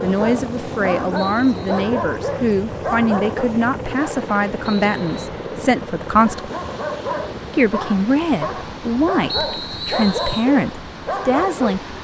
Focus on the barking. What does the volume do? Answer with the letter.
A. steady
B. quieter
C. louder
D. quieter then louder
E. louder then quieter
A.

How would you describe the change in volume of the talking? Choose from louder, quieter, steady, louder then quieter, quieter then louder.
steady.